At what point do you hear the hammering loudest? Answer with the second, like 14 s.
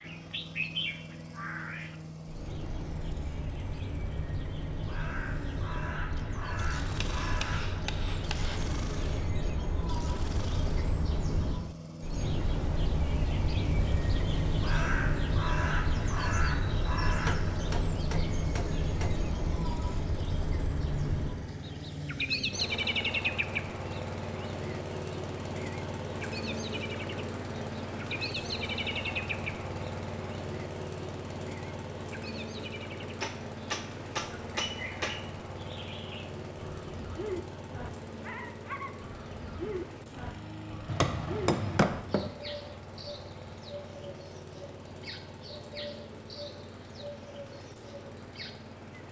42 s.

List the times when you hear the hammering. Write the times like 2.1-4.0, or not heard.
7.0-8.6, 17.1-19.1, 33.2-35.2, 40.9-42.3.